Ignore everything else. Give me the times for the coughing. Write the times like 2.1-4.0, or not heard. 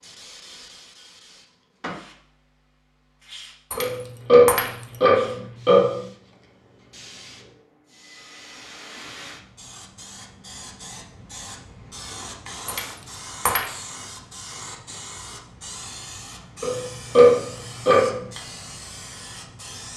not heard.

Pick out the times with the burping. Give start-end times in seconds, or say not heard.
3.8-6.0, 16.6-18.2.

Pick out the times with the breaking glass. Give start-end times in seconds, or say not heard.
3.7-5.0, 12.7-13.7.